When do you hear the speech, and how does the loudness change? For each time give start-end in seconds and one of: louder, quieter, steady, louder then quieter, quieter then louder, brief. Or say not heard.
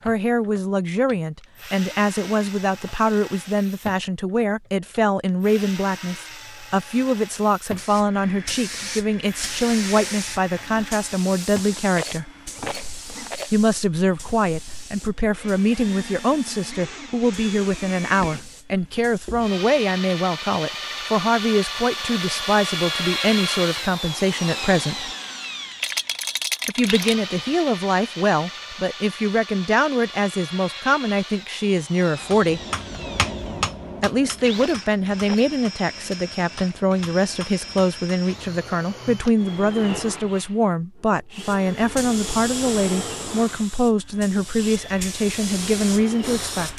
0.1-12.3 steady
13.5-25.1 steady
26.6-32.6 steady
34.0-46.7 steady.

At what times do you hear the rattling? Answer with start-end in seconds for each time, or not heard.
11.9-13.6, 25.8-27.1, 34.5-35.5.